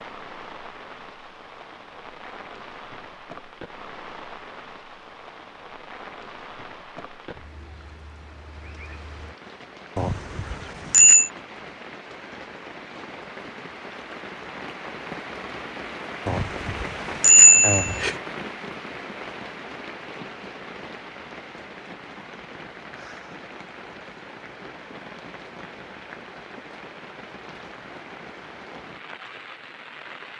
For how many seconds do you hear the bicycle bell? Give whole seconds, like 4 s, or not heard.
3 s.